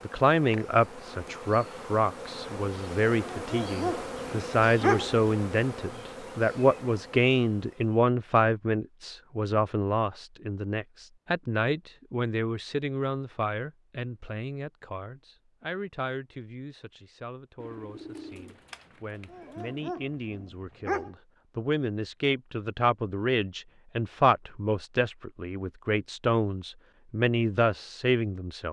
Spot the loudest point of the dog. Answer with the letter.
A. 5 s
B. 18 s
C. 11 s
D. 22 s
A.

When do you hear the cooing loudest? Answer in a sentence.
The loudest moment of the cooing is at 18 seconds.